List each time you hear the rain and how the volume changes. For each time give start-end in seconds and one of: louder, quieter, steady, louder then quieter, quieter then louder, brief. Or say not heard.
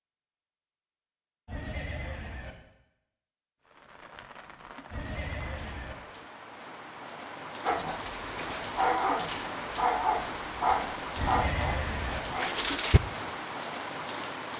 3.6-14.5 louder.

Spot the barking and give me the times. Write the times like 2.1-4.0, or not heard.
7.7-13.0.